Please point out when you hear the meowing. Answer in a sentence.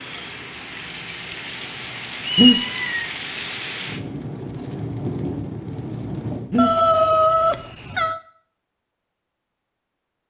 The meowing can be heard from 2.2 to 3.0 s and from 6.5 to 8.2 s.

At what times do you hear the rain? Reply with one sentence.
You can hear the rain from 0.0 to 6.5 s.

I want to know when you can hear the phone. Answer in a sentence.
The phone can't be heard in this clip.